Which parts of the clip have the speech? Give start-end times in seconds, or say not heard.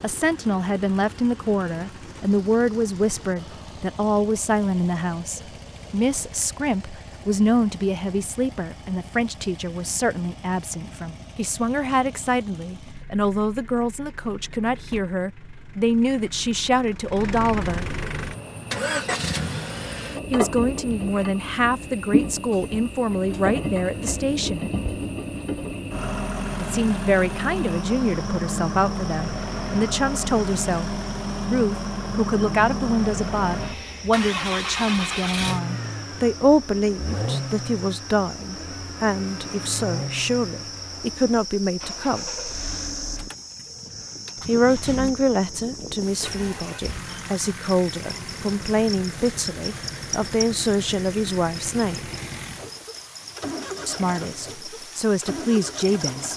0.0-18.0, 20.3-24.7, 26.6-42.3, 44.5-52.1, 53.9-56.3.